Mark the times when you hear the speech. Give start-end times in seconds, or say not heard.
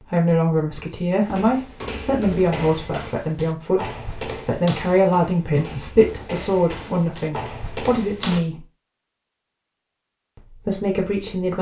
0.0-8.7, 10.3-11.5.